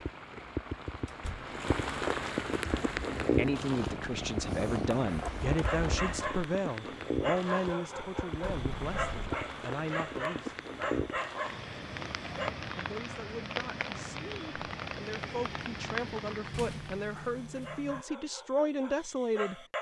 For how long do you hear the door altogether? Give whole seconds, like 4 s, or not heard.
3 s.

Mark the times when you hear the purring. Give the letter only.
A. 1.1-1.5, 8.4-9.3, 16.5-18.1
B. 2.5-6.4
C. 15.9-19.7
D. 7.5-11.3
B.